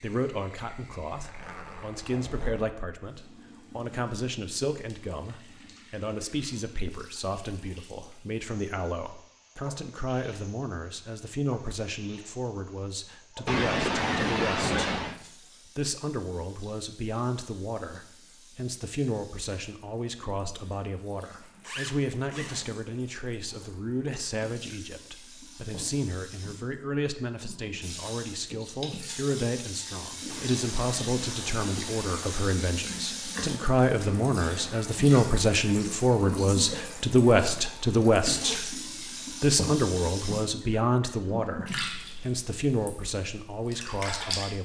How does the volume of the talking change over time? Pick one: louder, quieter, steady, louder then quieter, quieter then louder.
louder.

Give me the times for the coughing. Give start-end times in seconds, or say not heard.
13.4-15.2, 30.2-32.5.